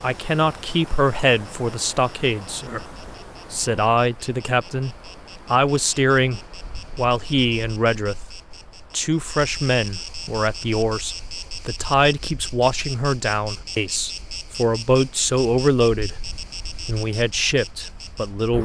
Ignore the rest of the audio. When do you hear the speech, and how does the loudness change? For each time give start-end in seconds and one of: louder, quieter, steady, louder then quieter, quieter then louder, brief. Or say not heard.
0.0-2.9 brief
3.5-16.2 steady
16.9-18.6 brief.